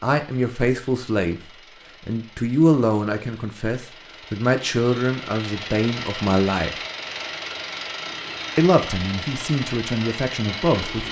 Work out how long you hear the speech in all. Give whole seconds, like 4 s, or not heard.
9 s.